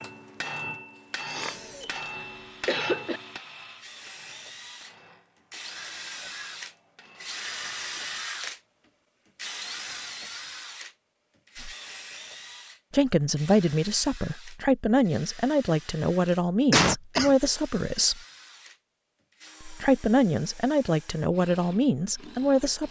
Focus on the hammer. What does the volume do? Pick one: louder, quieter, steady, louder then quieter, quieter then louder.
quieter.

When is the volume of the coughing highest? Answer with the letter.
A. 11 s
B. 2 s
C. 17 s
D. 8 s
C.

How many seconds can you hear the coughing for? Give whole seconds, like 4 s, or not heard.
3 s.